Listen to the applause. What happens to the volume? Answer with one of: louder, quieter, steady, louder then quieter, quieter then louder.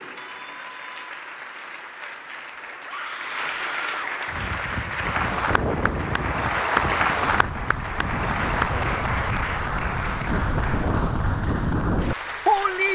louder then quieter.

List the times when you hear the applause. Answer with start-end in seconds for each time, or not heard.
0.0-12.9.